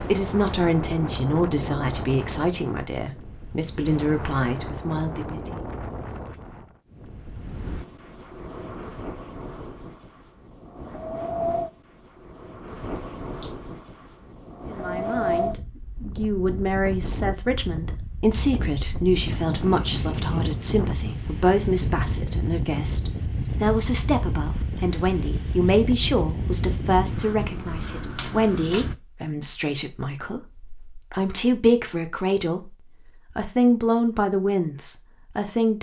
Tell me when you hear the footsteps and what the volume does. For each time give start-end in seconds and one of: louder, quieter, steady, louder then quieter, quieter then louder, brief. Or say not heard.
not heard.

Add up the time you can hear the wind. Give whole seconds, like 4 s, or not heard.
29 s.